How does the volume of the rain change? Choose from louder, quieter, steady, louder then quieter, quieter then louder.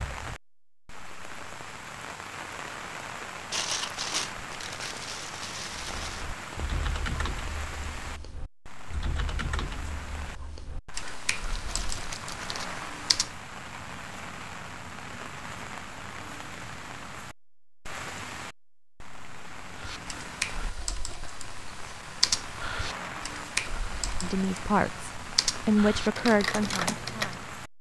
steady.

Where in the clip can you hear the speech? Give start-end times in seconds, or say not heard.
24.2-27.5.